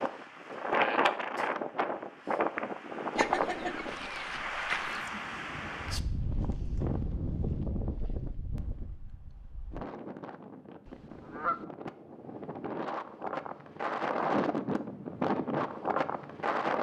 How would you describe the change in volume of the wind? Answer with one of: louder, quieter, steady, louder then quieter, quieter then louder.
quieter then louder.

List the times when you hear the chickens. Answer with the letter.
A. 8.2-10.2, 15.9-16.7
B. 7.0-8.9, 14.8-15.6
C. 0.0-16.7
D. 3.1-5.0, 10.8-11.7
D.